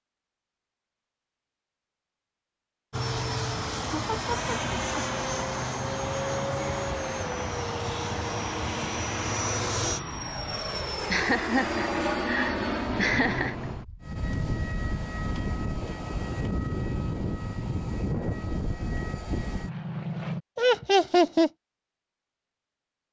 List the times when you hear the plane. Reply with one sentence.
The plane can be heard from 2.9 to 20.4 s.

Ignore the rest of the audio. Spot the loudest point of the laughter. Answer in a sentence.
The loudest moment of the laughter is at 21 seconds.